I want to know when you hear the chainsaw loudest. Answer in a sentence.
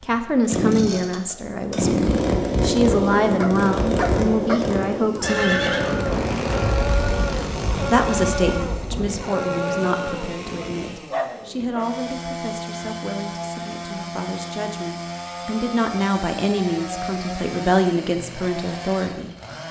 The loudest moment of the chainsaw is at 2 seconds.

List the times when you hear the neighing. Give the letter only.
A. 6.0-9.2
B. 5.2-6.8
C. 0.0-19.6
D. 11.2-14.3
B.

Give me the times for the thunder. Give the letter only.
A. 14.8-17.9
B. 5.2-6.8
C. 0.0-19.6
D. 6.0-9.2
D.